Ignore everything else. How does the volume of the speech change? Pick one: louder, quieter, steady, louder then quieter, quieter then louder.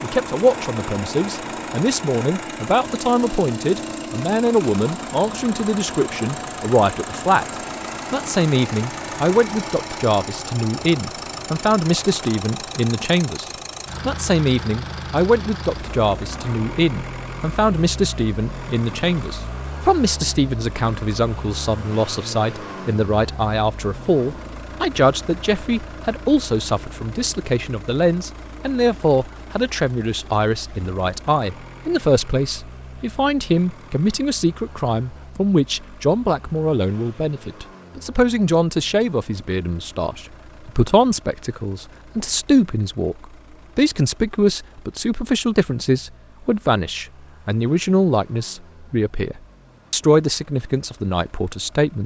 steady.